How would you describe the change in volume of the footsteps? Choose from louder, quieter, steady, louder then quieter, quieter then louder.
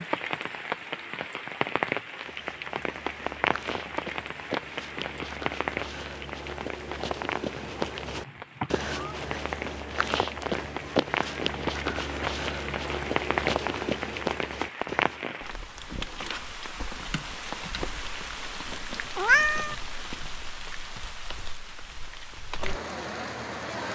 louder.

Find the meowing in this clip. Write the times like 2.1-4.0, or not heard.
7.5-9.2, 19.1-19.8.